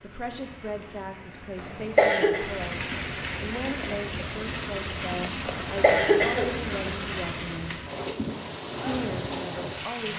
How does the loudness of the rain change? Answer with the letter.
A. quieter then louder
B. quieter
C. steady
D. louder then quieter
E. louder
E.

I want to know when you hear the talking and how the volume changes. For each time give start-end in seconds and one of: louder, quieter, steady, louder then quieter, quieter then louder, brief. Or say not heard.
0.0-7.8 steady
8.8-10.1 brief.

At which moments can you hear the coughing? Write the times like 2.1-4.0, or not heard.
1.6-2.4, 5.5-7.0.